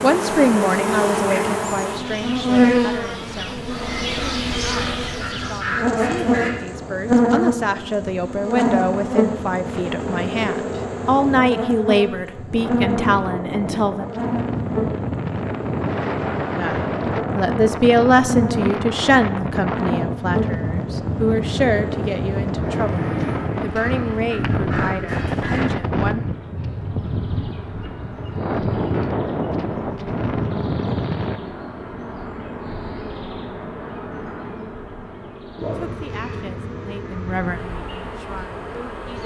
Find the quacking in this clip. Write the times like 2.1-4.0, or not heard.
3.6-6.5, 22.8-25.8.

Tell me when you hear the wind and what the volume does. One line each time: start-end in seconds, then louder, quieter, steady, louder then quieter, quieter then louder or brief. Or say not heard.
0.0-31.4 louder.